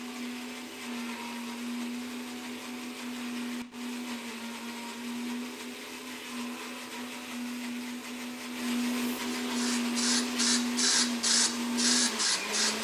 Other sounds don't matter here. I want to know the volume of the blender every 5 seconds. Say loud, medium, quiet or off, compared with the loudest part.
medium, loud, loud.